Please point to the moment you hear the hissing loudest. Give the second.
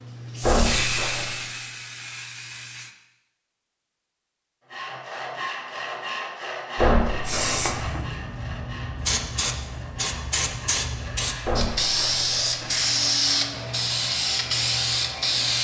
13 s.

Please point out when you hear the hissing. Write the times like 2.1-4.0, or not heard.
0.0-3.0, 7.2-15.5.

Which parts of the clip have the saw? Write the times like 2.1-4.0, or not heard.
4.7-13.7.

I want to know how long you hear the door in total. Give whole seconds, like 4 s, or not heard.
4 s.